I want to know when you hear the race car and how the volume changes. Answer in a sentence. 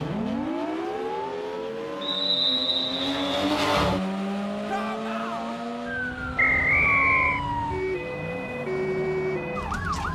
You can hear the race car from 0.0 to 10.0 s, getting louder then quieter.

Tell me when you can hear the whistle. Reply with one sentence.
The whistle can be heard from 2.0 to 3.4 s and from 6.3 to 7.4 s.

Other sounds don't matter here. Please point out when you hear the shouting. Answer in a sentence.
You can hear the shouting from 4.7 to 5.5 s.